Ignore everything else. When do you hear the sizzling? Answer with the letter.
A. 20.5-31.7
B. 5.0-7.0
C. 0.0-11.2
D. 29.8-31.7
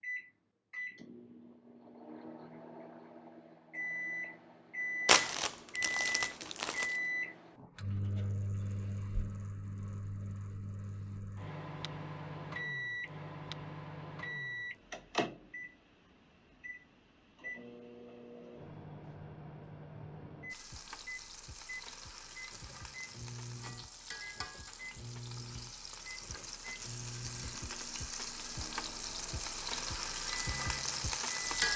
A.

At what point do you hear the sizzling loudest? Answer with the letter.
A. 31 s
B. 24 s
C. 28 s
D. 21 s
A.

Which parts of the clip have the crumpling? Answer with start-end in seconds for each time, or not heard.
5.0-7.0.